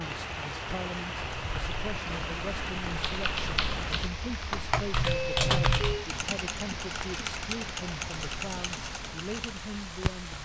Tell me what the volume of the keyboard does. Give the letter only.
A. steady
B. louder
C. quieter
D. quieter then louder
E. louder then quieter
E.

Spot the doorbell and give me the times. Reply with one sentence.
The doorbell can be heard from 5.0 to 6.0 s.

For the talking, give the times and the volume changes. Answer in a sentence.
You can hear the talking from 0.0 to 10.3 s, at a steady volume.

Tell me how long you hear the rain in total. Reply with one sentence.
The rain can be heard for 10 seconds in total.